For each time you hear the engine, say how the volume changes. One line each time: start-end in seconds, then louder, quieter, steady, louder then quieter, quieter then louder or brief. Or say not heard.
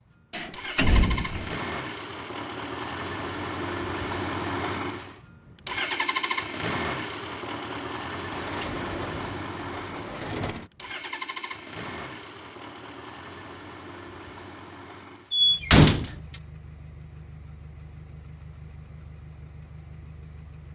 0.0-20.7 quieter.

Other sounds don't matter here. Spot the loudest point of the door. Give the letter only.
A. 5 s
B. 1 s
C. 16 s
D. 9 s
C.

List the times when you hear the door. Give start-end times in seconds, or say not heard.
0.3-1.6, 8.3-10.7, 15.3-16.4.